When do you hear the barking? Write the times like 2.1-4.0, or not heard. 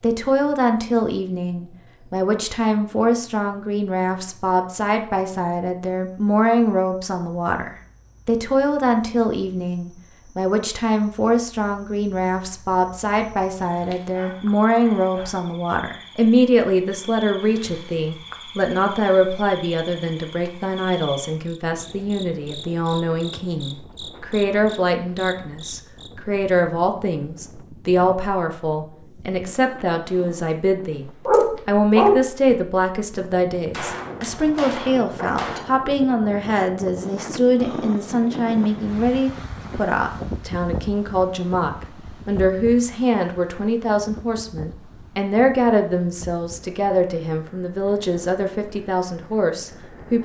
13.9-15.4, 31.2-32.2.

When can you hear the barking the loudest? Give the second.
32 s.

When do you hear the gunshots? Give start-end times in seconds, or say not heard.
33.7-35.6.